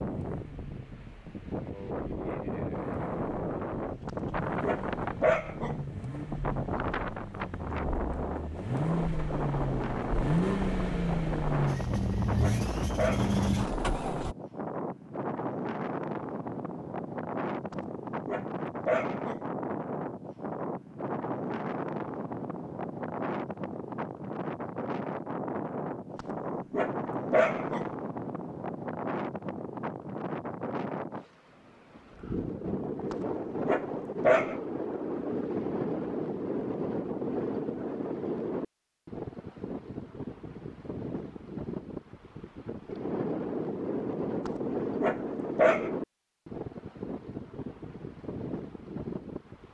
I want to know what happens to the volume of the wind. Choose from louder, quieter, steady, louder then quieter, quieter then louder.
steady.